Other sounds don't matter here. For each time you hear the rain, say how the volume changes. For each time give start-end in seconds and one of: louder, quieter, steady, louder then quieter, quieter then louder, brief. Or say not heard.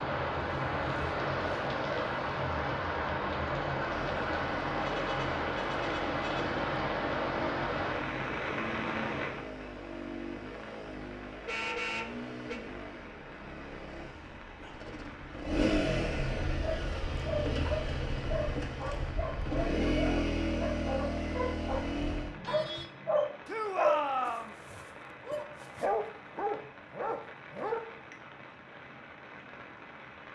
0.0-30.2 quieter.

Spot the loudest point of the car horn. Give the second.
12 s.